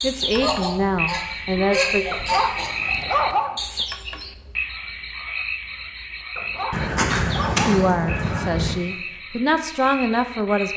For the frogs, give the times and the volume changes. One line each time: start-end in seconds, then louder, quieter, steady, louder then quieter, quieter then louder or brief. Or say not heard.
0.0-10.7 quieter.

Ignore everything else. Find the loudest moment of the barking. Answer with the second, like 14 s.
3 s.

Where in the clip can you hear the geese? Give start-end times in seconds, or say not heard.
0.2-2.7, 6.7-8.8.